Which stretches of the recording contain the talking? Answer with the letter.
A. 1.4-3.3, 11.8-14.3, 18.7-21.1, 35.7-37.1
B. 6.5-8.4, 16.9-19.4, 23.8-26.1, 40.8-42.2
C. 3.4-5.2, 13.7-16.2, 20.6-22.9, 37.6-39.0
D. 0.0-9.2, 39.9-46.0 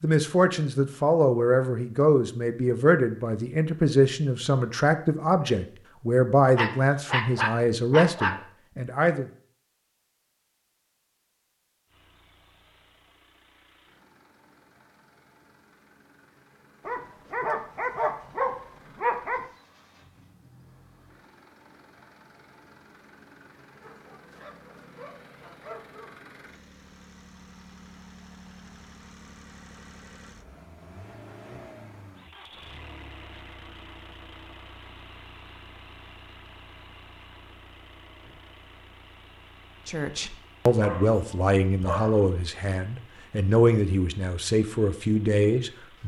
D.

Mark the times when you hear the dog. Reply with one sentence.
You can hear the dog from 6.5 to 8.4 s, from 16.9 to 19.4 s, from 23.8 to 26.1 s and from 40.8 to 42.2 s.